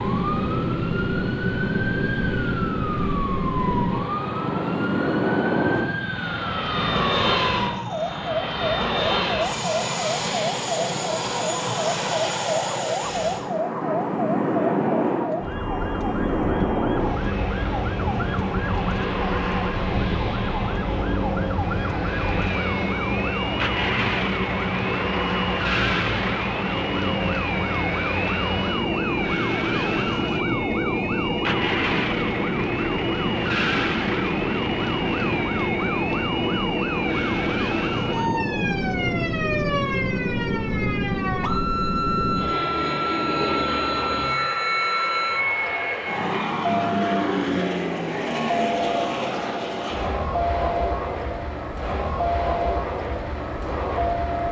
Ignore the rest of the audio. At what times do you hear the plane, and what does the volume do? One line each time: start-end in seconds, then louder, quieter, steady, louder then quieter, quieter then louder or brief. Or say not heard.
0.0-54.4 steady.